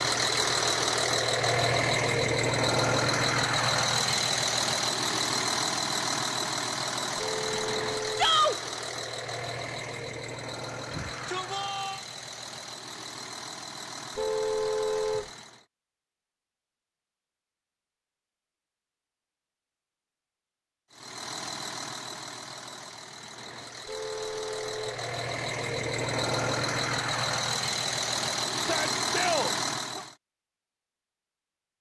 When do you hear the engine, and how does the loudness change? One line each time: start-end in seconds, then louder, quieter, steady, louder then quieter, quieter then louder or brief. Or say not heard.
0.0-15.7 quieter
20.9-30.1 louder.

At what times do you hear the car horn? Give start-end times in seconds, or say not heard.
7.2-8.3, 14.2-15.3, 23.9-25.0.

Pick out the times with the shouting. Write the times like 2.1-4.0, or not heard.
8.2-8.6, 10.9-12.0, 28.6-30.1.